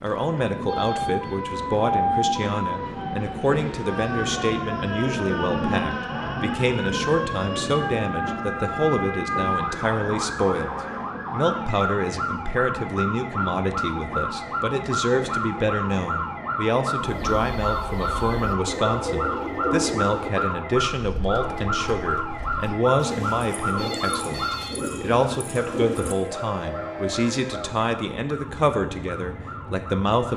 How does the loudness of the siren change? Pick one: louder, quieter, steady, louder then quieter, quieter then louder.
quieter.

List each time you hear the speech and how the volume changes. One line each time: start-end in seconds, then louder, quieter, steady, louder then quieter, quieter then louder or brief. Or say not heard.
0.0-10.7 steady
11.3-30.3 steady.